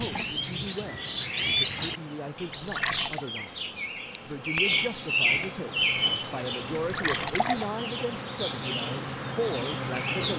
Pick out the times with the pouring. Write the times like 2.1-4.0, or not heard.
2.5-3.2, 6.7-7.7.